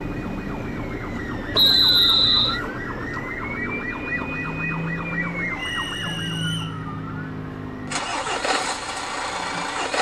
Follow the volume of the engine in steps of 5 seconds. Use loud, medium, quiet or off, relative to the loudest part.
medium, loud.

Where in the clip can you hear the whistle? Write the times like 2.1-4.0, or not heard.
1.5-2.6, 5.5-6.8.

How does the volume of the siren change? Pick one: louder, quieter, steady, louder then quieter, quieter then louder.
quieter.